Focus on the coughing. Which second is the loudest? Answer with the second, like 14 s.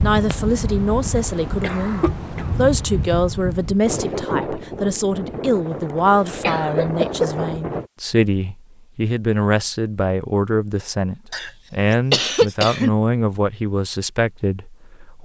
12 s.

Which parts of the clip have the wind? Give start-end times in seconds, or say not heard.
0.0-7.9.